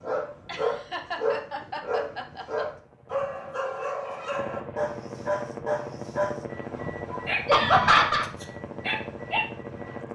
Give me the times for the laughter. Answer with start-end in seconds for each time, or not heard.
0.5-2.6, 7.5-8.2.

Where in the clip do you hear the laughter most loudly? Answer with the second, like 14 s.
8 s.